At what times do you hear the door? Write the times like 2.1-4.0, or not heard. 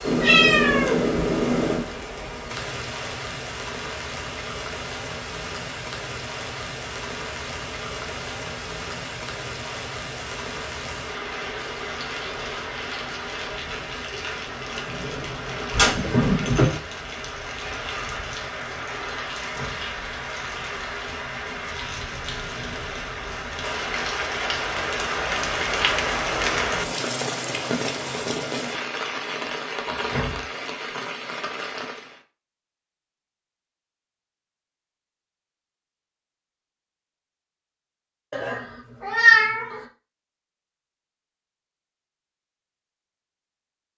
19.4-19.9, 29.9-30.4.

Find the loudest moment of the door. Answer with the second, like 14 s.
30 s.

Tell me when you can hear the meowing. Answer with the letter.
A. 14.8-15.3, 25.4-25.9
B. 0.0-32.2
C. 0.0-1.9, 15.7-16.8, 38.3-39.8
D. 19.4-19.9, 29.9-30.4
C.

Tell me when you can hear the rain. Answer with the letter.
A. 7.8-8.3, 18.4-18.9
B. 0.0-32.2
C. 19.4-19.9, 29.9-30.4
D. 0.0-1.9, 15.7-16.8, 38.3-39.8
B.